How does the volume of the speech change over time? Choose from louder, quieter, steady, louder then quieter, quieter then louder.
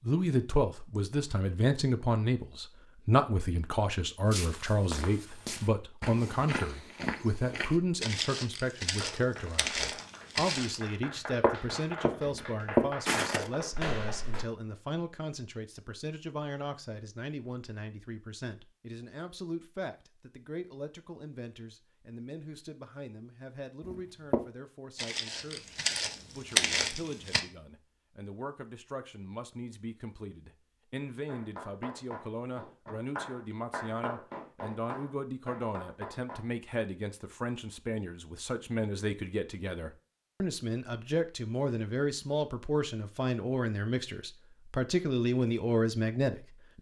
quieter then louder.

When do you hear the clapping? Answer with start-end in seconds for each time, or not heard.
9.0-14.0, 31.2-36.5.